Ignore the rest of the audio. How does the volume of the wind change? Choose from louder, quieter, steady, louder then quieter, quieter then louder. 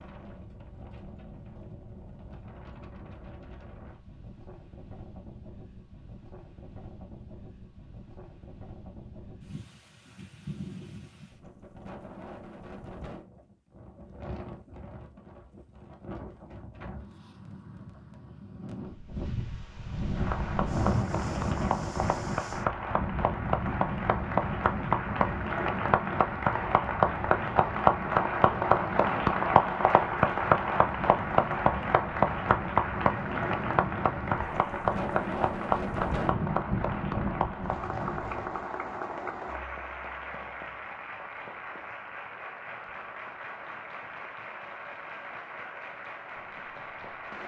louder.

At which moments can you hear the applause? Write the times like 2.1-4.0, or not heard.
20.1-47.4.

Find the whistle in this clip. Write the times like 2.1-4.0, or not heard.
not heard.